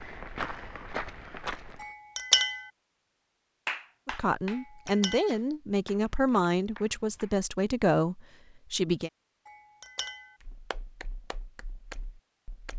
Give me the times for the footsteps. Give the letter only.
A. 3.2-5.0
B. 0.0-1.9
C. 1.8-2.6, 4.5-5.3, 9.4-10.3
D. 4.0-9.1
B.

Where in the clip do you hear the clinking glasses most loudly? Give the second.
2 s.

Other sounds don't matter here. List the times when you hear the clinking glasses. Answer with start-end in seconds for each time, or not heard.
1.8-2.6, 4.5-5.3, 9.4-10.3.